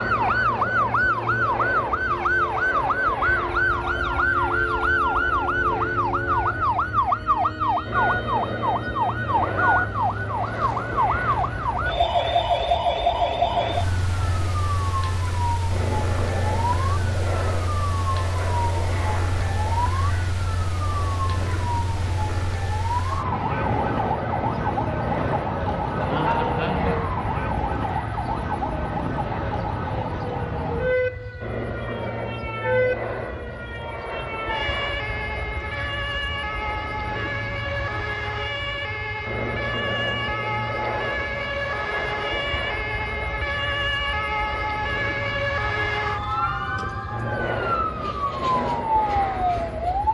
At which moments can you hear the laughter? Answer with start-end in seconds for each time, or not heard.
25.9-27.0.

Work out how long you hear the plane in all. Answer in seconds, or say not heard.
50 s.